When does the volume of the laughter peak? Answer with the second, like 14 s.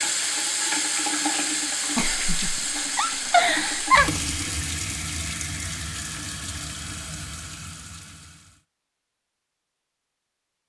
4 s.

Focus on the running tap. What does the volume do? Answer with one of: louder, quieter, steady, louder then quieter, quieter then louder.
quieter.